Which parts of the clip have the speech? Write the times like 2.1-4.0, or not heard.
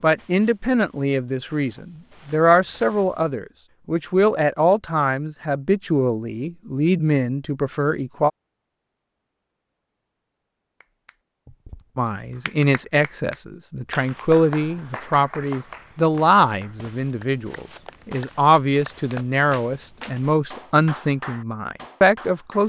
0.0-8.3, 11.9-22.6.